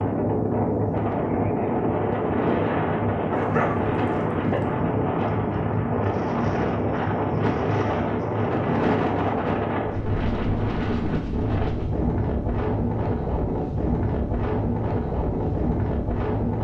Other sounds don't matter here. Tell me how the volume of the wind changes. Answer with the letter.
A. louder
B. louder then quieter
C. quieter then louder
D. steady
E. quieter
D.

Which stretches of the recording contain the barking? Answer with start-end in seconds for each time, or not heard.
3.3-4.7.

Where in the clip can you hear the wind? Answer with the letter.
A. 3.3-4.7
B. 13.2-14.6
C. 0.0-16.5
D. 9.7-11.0
C.